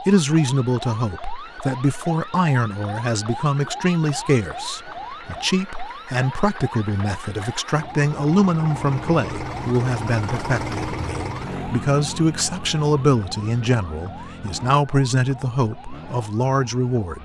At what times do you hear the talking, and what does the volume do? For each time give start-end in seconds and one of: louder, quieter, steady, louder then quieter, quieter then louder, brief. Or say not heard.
0.1-17.2 steady.